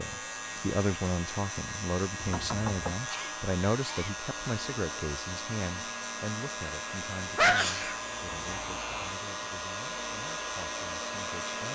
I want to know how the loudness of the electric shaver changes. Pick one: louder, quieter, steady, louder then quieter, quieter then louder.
steady.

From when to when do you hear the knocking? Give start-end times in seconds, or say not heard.
2.1-3.1.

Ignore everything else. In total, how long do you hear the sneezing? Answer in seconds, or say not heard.
2 s.